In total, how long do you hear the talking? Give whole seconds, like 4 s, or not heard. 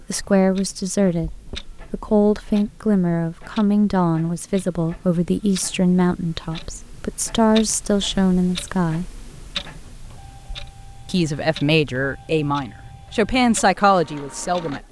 13 s.